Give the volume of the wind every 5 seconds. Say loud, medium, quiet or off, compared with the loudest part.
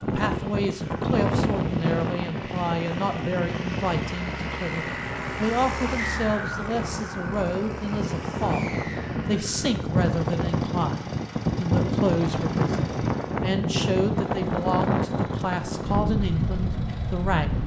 loud, medium, loud, loud.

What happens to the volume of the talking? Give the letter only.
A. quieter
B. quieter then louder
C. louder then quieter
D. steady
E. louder
D.